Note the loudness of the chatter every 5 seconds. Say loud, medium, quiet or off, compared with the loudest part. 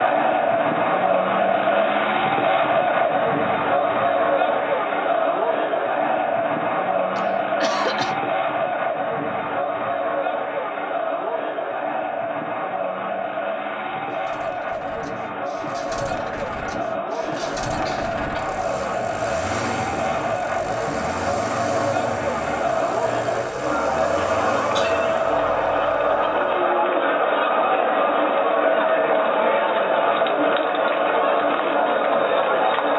loud, loud, medium, medium, loud, loud, loud.